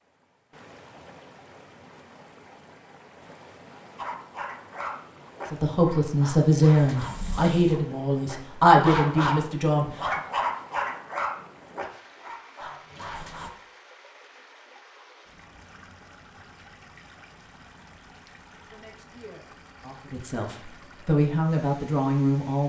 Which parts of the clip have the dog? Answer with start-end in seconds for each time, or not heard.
4.0-13.5.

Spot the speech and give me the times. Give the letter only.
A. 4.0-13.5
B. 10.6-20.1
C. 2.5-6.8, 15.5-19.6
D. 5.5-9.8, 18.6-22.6
D.